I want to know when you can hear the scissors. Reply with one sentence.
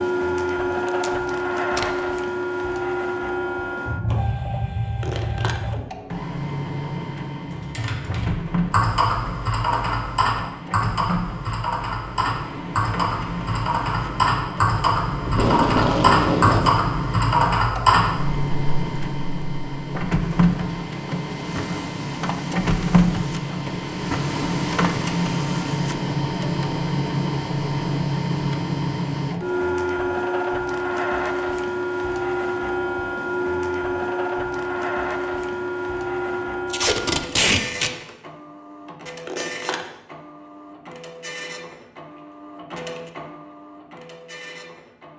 You can hear the scissors from 5.0 to 5.6 s and from 39.2 to 39.9 s.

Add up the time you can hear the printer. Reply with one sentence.
The printer can be heard for 45 seconds in total.